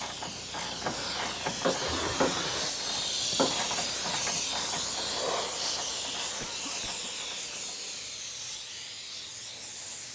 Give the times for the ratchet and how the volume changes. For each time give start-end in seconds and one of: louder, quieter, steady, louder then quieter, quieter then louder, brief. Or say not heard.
0.0-10.0 quieter.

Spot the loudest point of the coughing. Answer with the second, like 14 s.
2 s.